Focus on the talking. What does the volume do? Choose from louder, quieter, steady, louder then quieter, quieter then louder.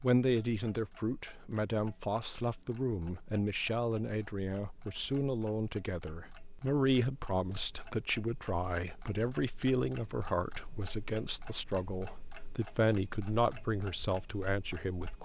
steady.